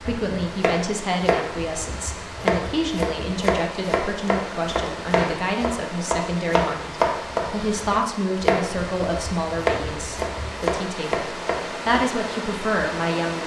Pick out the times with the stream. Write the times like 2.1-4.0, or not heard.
0.0-13.4.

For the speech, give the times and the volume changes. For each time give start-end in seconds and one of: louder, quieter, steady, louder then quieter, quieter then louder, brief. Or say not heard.
0.0-13.4 steady.